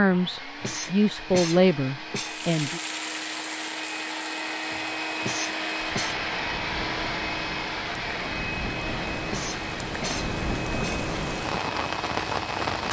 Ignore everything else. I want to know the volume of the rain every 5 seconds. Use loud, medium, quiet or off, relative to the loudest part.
medium, medium, loud.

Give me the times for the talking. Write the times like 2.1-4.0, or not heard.
0.0-2.8.